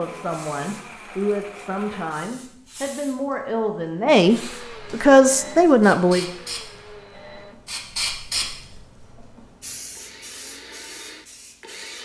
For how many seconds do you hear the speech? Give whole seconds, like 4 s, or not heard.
6 s.